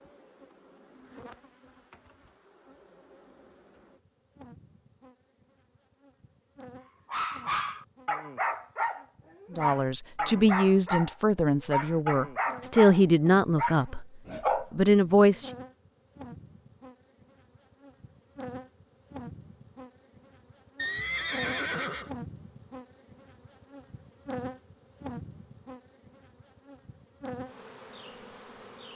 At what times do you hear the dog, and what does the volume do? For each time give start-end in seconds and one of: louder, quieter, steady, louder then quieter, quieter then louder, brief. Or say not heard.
7.1-15.3 steady.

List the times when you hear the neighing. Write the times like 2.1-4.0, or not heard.
20.8-22.1.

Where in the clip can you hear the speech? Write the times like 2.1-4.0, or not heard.
9.5-15.5.